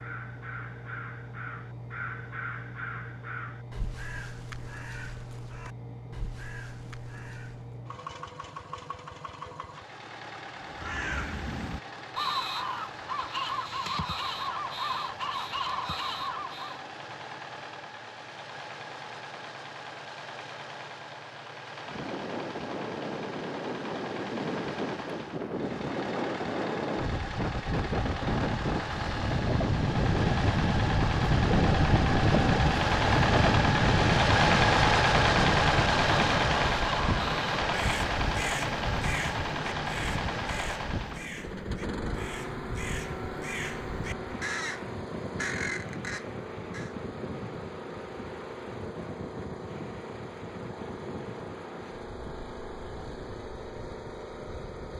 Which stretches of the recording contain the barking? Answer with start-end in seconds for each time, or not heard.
not heard.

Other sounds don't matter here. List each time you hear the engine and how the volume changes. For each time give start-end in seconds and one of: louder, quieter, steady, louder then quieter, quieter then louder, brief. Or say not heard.
0.0-54.9 louder then quieter.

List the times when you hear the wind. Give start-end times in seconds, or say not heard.
21.9-54.9.